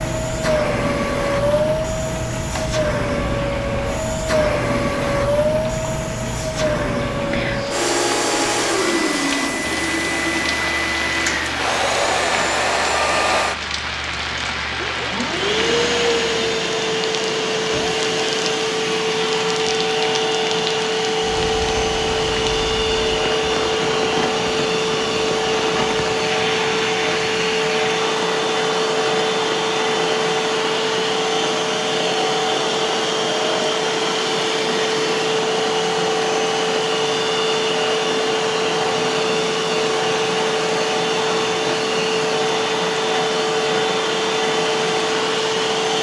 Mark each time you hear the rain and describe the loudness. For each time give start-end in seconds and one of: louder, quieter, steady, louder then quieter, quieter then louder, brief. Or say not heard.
0.0-45.9 steady.